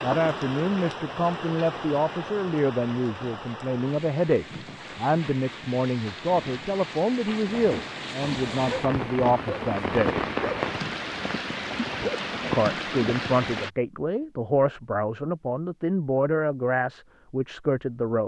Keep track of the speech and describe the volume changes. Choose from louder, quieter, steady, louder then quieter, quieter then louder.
steady.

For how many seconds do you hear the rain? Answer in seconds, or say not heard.
14 s.